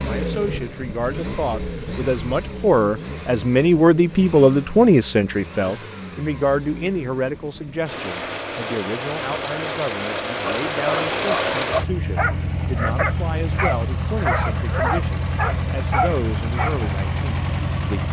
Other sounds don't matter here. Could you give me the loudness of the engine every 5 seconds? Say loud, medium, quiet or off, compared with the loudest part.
medium, medium, loud, loud.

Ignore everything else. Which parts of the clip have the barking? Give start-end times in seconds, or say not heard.
10.4-16.9.